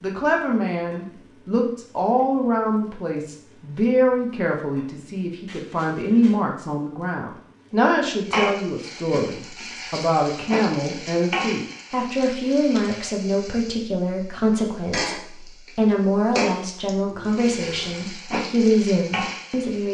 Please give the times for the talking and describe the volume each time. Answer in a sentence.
You can hear the talking from 0.0 to 19.8 s, at a steady volume.